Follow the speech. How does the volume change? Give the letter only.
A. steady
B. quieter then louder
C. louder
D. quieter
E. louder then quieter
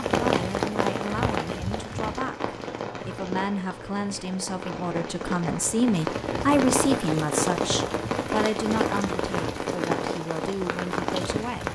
E.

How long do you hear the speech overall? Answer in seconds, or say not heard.
12 s.